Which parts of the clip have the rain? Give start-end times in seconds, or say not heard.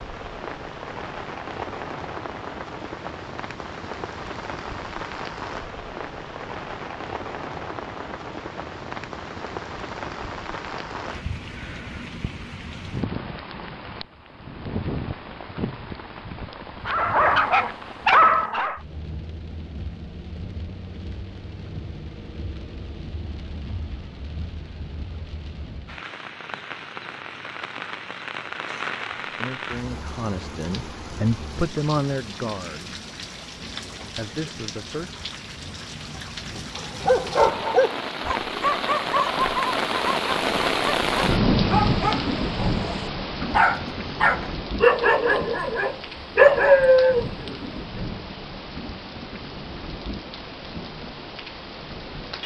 0.0-52.4.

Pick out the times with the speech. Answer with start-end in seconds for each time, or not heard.
29.4-33.0, 34.1-35.1.